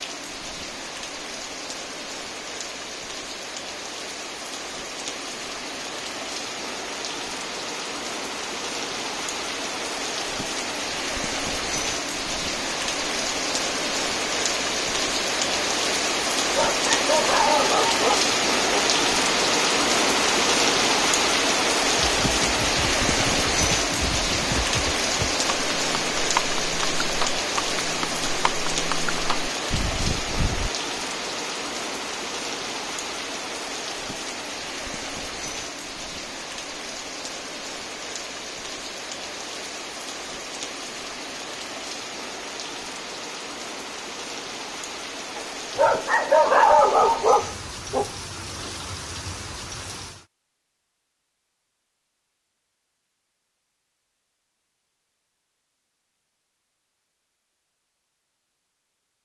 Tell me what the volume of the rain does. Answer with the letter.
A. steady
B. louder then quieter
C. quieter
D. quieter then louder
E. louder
B.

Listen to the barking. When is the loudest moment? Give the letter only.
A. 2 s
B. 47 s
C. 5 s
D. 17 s
B.